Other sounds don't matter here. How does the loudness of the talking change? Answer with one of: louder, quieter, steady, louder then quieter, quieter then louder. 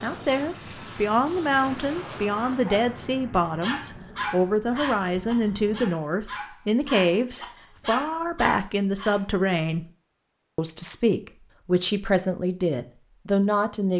steady.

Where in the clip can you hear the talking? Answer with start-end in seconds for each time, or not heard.
0.0-9.8, 10.6-13.9.